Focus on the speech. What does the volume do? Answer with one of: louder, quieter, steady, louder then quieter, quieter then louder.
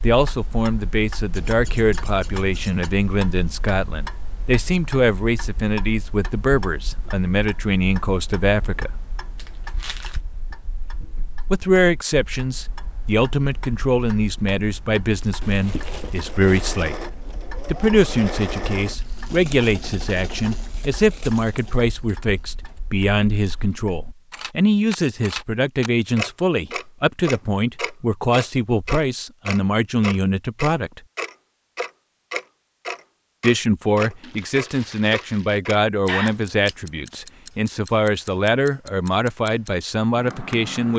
steady.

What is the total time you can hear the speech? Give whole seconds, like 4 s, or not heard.
35 s.